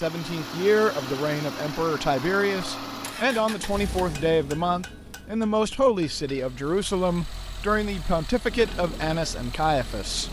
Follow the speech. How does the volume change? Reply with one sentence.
The loudness of the speech stays about the same.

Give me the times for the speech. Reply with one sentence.
The speech can be heard from 0.0 to 10.2 s.